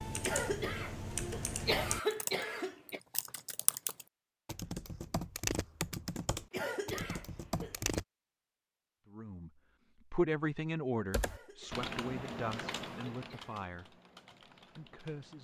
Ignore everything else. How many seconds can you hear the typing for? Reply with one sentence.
The typing can be heard for 12 seconds in total.